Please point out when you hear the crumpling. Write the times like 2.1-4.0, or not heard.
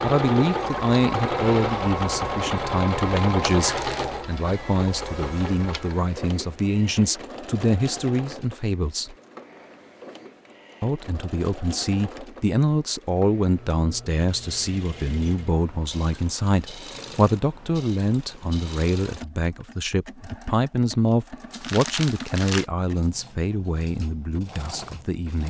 3.5-4.2, 21.5-22.6.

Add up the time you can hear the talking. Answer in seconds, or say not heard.
24 s.